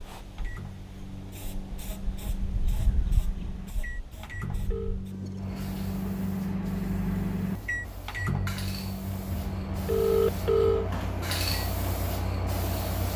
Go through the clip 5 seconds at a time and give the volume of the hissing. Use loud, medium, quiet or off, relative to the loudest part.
medium, medium, loud.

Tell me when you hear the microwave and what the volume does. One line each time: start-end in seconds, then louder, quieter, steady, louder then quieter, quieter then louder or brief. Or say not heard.
0.2-12.9 louder then quieter.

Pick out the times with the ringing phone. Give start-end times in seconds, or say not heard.
4.1-5.0, 9.3-10.9.